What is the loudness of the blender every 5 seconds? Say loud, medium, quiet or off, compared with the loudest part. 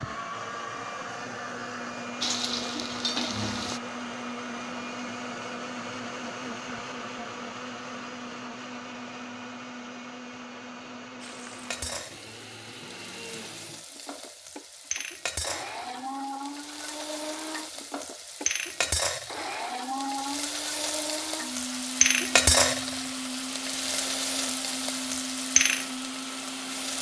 loud, loud, medium, loud, loud, loud.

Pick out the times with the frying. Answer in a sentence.
You can hear the frying from 2.2 to 3.8 s and from 11.2 to 26.9 s.